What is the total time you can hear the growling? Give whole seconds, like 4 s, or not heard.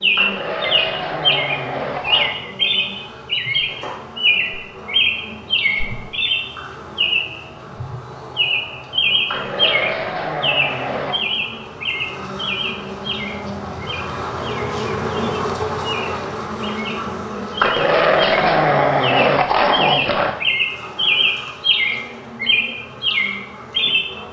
7 s.